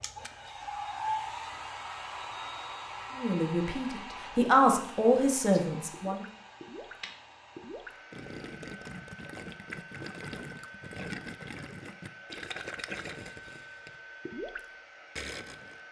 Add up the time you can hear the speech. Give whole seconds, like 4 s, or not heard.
3 s.